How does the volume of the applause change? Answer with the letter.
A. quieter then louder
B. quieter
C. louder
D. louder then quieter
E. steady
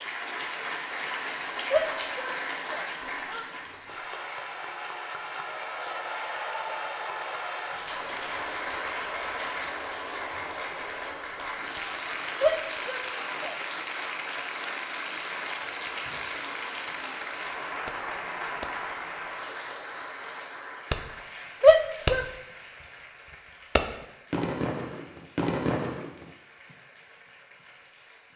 B.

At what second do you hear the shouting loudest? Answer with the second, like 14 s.
22 s.